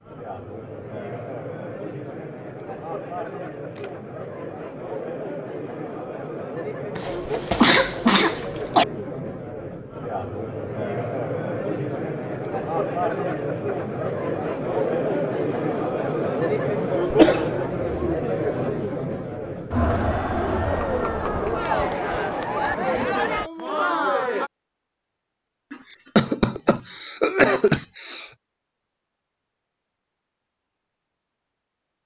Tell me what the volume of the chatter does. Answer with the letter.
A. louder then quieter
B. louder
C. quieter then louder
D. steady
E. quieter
B.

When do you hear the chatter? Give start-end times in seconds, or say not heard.
0.0-24.5.